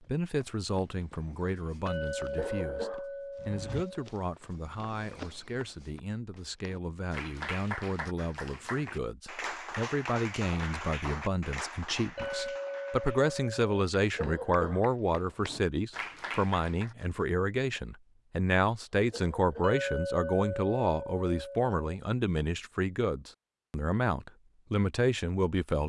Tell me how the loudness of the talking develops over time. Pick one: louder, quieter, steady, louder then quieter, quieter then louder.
louder.